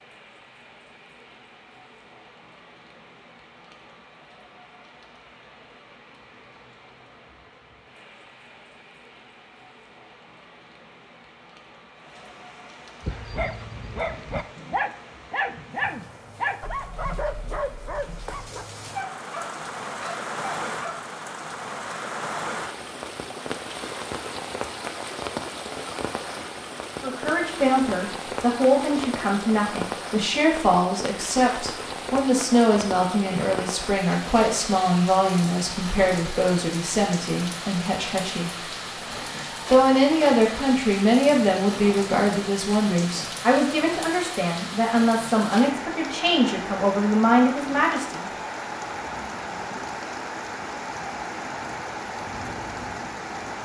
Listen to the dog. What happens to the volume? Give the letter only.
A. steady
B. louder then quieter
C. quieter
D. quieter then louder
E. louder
C.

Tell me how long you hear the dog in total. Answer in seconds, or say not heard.
8 s.